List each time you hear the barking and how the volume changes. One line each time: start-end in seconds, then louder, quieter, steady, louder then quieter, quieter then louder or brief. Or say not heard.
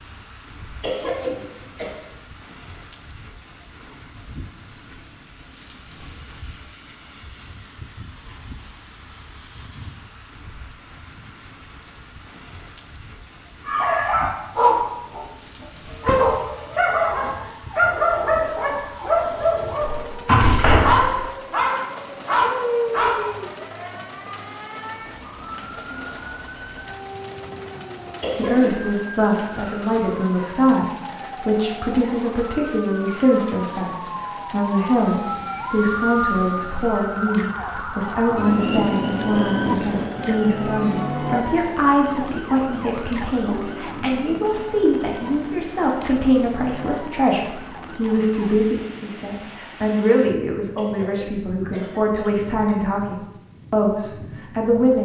13.7-23.5 steady.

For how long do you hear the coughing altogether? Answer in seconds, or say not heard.
4 s.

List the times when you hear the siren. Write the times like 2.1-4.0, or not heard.
15.8-48.6.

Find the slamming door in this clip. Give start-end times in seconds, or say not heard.
19.8-21.3.